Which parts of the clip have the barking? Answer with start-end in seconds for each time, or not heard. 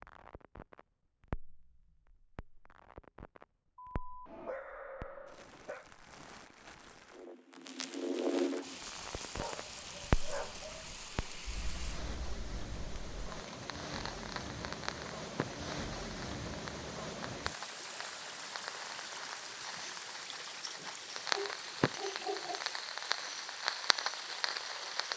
3.8-5.9, 9.3-11.1, 20.8-22.6.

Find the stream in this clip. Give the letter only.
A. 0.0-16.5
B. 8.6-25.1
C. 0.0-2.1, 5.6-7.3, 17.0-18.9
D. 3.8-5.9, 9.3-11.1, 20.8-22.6
B.